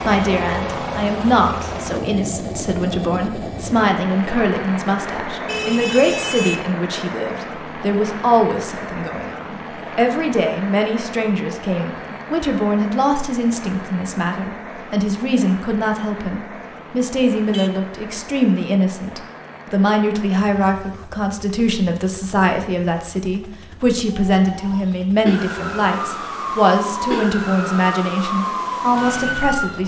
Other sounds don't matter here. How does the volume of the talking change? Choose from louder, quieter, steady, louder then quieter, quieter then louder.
steady.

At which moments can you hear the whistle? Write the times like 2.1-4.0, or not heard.
not heard.